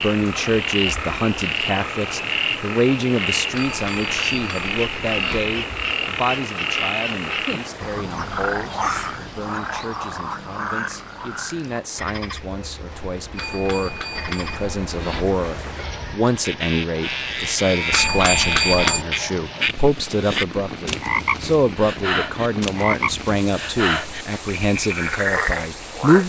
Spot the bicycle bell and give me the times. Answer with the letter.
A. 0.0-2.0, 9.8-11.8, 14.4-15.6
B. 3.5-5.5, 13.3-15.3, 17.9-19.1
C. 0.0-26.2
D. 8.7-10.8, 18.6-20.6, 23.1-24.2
B.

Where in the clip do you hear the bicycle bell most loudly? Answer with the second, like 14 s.
19 s.